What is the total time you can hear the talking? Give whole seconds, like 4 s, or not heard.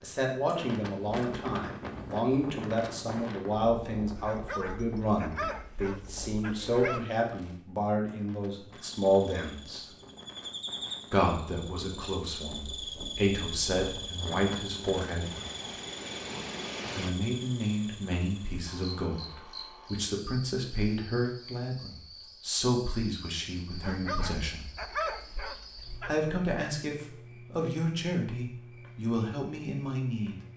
26 s.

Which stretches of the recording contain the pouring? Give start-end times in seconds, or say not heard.
not heard.